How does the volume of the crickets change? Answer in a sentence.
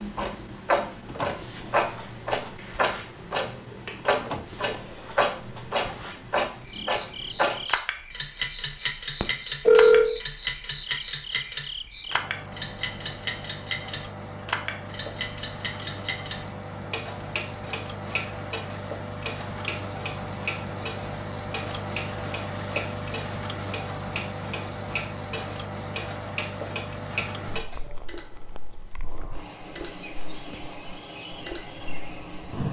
The volume of the crickets goes up, then down.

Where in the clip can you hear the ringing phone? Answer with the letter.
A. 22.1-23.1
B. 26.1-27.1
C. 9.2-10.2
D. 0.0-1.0
C.